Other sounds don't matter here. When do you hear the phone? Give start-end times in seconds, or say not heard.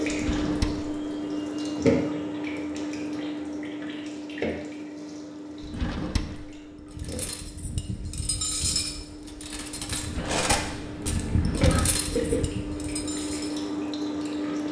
10.2-11.9.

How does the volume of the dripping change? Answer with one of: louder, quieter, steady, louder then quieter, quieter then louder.
quieter then louder.